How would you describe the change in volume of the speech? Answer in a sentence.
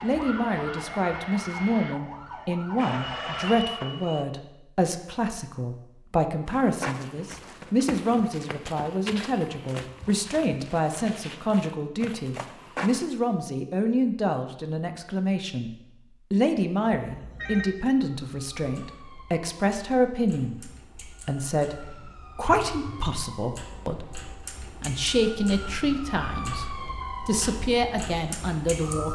The volume of the speech stays about the same.